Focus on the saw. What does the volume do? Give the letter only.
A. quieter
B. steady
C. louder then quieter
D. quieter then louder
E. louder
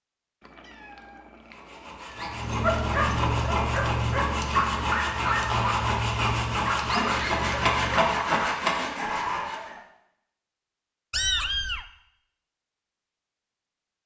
E.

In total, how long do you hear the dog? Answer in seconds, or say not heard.
8 s.